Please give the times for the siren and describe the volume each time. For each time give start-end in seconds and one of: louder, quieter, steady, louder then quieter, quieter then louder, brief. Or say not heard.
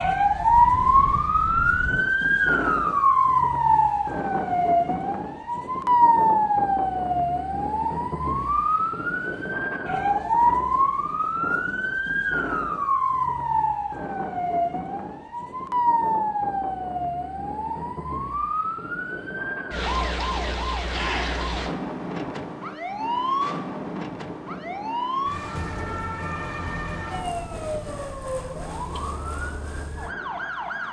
0.0-30.8 quieter.